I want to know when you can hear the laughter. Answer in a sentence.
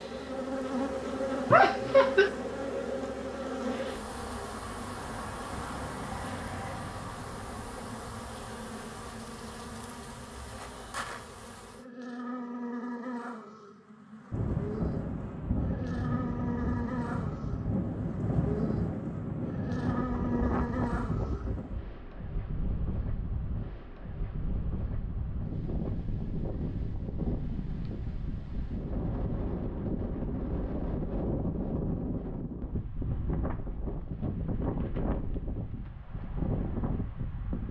The laughter can be heard from 1.5 to 2.3 s.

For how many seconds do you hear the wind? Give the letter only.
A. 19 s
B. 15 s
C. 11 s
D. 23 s
D.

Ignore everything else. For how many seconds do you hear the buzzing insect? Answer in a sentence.
You can hear the buzzing insect for 22 seconds altogether.